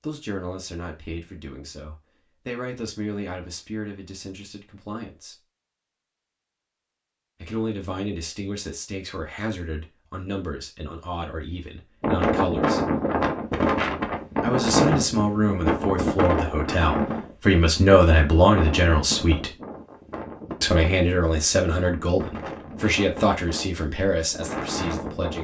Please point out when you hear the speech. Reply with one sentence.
The speech can be heard from 0.0 to 5.3 s, from 7.4 to 12.8 s, from 14.4 to 19.5 s and from 20.6 to 25.3 s.